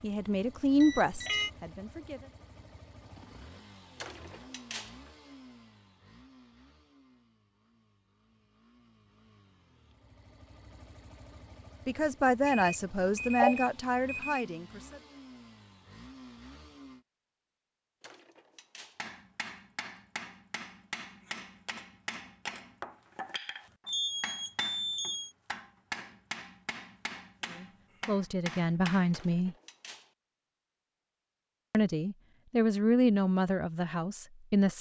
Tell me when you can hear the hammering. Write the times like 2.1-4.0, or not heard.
18.9-29.1.